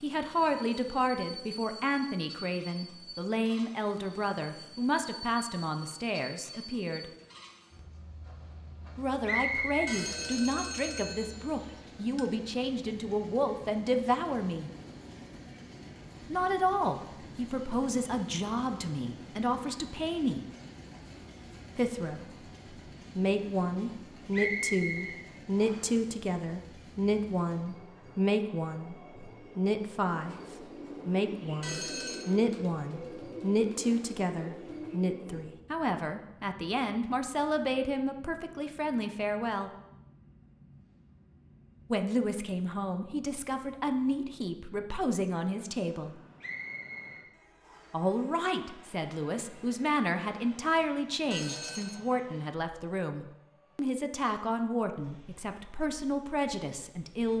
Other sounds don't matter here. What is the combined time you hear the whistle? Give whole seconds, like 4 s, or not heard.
4 s.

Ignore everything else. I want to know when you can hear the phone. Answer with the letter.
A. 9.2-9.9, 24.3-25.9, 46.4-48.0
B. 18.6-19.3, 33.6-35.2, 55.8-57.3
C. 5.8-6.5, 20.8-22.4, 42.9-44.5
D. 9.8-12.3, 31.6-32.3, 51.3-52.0
D.